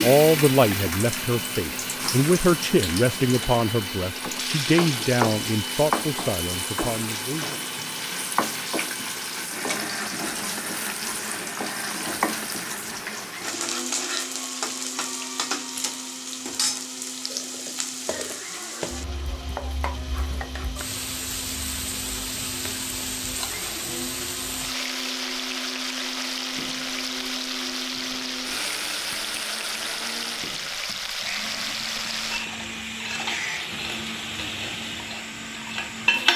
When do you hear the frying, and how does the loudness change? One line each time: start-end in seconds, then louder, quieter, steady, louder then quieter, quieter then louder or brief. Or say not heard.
0.0-36.3 steady.